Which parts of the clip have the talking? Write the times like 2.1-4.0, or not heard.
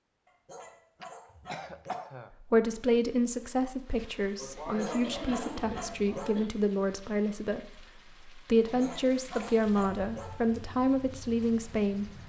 2.5-12.1.